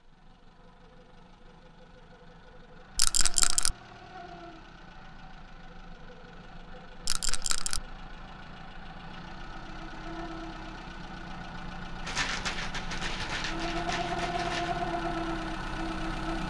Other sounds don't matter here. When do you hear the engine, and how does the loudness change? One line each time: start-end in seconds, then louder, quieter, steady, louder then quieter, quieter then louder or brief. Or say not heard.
0.0-16.4 louder.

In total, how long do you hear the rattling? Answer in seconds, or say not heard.
4 s.